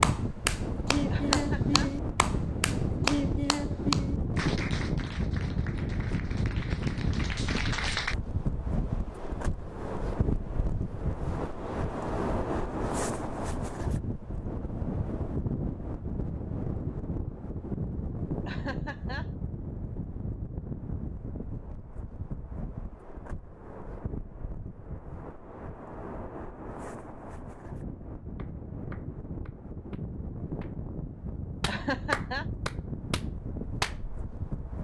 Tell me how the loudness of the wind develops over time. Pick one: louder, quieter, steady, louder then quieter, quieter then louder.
quieter.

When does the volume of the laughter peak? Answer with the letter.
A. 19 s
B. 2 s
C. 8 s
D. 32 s
D.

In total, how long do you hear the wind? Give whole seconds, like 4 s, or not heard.
35 s.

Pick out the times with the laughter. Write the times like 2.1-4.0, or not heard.
1.1-1.9, 18.4-19.3, 31.6-32.5.